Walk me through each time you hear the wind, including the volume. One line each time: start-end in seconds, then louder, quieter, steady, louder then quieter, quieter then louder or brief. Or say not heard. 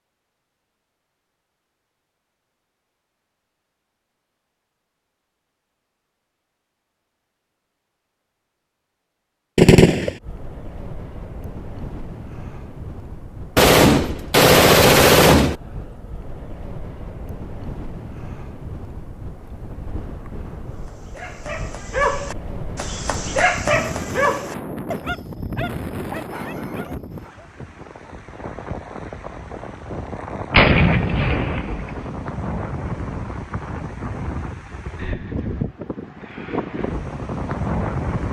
10.2-38.2 louder.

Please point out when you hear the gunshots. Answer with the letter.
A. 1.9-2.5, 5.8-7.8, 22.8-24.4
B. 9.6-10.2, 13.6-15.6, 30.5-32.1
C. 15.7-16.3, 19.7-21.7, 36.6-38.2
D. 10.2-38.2
B.